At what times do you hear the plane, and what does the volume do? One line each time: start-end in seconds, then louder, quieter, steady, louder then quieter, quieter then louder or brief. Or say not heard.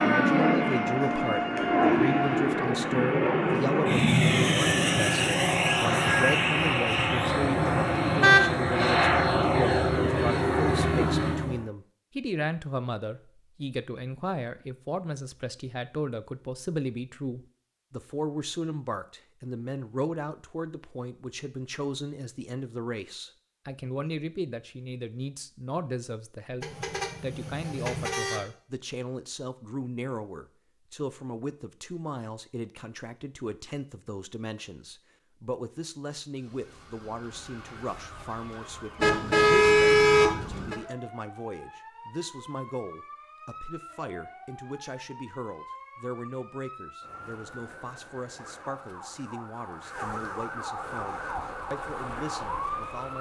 0.0-11.7 steady.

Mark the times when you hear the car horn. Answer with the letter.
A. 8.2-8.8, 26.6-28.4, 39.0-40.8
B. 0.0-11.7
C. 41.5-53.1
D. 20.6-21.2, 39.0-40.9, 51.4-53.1
A.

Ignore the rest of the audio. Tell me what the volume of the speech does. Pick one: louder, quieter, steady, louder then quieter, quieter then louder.
quieter.